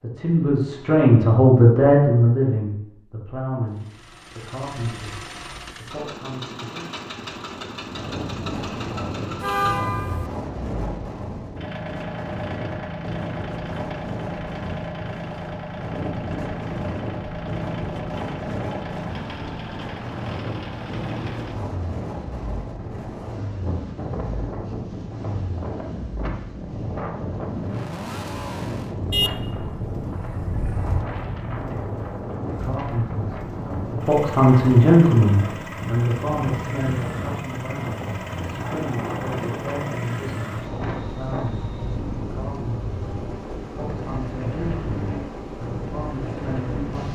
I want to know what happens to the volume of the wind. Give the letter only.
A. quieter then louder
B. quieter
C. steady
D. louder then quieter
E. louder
C.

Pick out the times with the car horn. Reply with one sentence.
You can hear the car horn from 9.4 to 10.3 s and from 29.1 to 31.0 s.